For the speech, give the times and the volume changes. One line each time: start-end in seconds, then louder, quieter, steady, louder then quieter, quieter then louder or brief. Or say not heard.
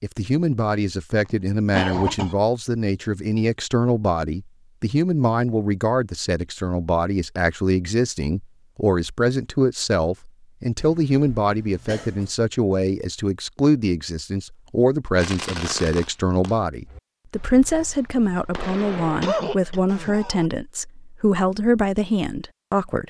0.0-23.0 steady.